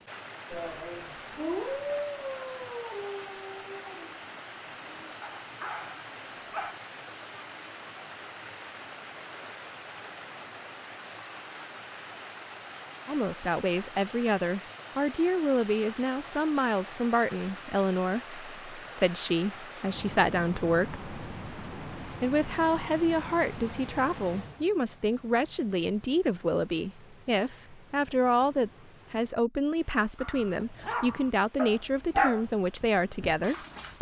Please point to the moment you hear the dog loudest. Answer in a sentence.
The loudest moment of the dog is at 32 seconds.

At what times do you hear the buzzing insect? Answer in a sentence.
You can't hear the buzzing insect here.